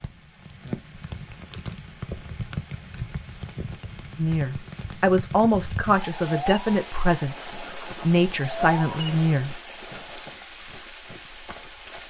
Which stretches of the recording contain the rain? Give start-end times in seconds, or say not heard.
0.0-12.0.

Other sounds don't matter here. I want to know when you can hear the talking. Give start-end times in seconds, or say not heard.
4.2-9.6.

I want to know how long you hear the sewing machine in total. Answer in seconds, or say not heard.
not heard.